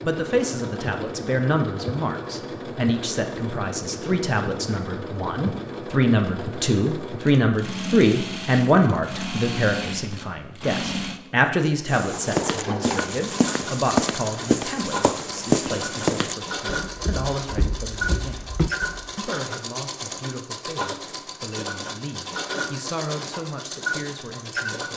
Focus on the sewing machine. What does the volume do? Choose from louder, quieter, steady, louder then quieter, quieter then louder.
steady.